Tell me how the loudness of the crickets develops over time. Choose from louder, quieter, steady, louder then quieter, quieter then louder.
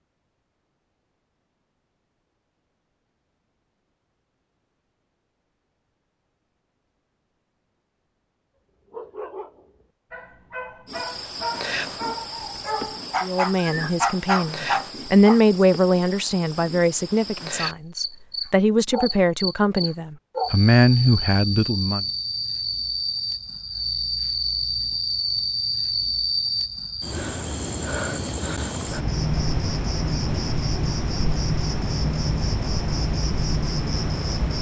louder.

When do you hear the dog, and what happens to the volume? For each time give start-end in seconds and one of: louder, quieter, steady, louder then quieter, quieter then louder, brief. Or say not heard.
8.8-15.4 louder.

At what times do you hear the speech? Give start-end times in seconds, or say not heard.
13.2-22.1.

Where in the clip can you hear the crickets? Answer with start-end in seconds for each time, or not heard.
10.8-34.5.